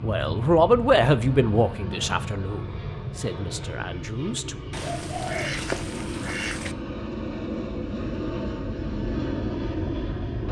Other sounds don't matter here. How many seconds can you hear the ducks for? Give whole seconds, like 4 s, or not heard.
2 s.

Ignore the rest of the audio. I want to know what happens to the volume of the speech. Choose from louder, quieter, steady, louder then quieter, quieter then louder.
quieter.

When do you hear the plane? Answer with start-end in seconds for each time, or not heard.
0.0-10.4.